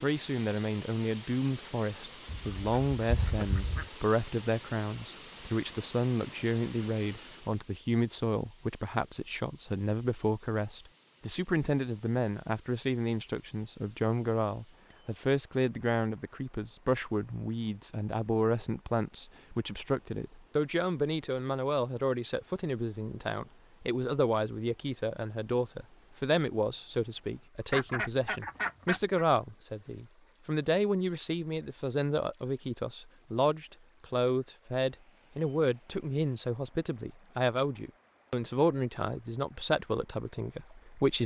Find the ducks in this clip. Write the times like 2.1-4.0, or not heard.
2.2-3.9, 27.7-29.2.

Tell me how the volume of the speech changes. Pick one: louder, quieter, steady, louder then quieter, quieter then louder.
steady.